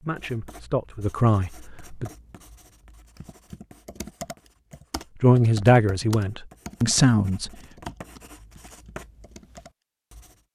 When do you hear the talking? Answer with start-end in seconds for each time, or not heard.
0.0-2.1, 5.2-7.9.